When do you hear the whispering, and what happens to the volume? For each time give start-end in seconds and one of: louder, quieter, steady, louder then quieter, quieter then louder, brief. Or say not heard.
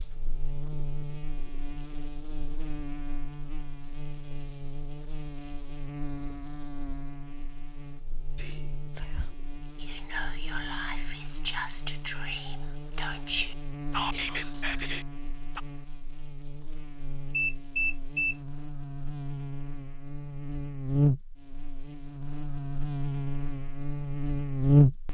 8.3-15.6 louder.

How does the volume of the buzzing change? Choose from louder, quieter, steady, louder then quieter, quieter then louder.
louder.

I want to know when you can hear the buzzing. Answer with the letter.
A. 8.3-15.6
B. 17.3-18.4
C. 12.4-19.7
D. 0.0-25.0
D.